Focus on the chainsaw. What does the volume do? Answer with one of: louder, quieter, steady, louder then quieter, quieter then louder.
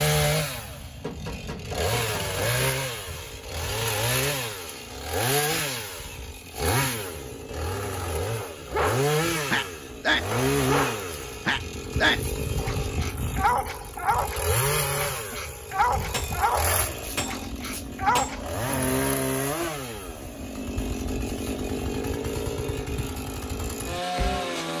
steady.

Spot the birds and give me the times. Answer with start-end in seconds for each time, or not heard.
not heard.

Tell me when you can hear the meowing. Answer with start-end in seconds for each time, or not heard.
not heard.